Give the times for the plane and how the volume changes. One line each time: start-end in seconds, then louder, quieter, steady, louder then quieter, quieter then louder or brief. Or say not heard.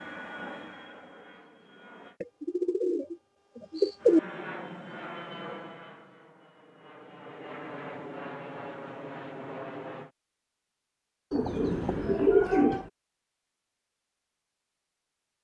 0.0-2.2 brief
4.0-10.1 quieter then louder.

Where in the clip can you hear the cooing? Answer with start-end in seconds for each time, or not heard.
2.2-4.2, 11.3-12.8.